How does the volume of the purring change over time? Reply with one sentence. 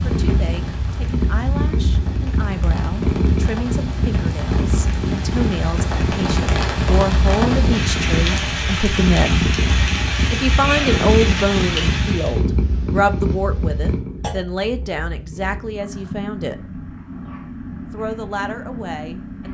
The loudness of the purring goes down.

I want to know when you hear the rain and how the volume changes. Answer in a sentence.
The rain can be heard from 0.0 to 12.4 s, getting louder.